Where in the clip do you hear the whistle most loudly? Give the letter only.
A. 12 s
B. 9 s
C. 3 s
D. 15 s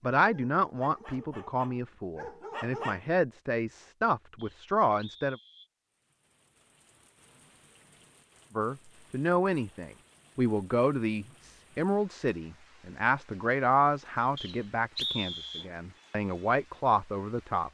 D.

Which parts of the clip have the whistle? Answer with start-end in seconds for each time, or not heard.
4.3-5.7, 14.3-15.7.